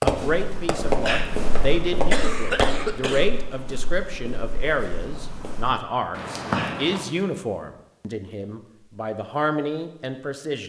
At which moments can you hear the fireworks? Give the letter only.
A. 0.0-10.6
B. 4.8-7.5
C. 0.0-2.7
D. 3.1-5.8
C.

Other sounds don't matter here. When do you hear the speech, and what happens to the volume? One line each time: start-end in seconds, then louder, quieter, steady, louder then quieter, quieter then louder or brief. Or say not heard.
0.0-10.6 steady.